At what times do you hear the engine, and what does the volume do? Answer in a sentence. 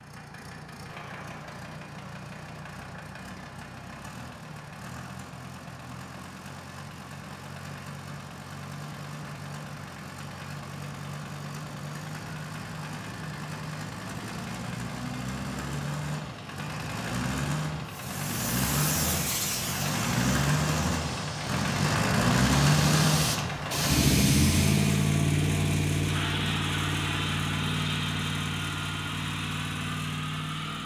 You can hear the engine from 0.0 to 30.8 s, getting louder.